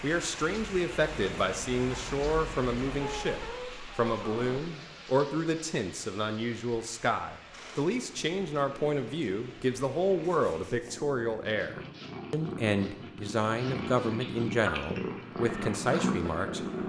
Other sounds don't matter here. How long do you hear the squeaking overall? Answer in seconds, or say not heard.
2 s.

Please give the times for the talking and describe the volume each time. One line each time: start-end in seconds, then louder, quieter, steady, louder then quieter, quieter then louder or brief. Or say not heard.
0.0-16.8 steady.